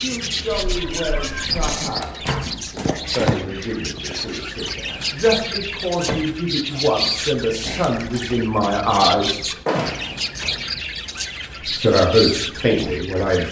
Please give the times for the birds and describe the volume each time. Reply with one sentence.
You can hear the birds from 0.0 to 13.4 s, at a steady volume.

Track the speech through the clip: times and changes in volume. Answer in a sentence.
The speech can be heard from 0.0 to 9.4 s, getting louder; and briefly from 11.8 to 13.4 s.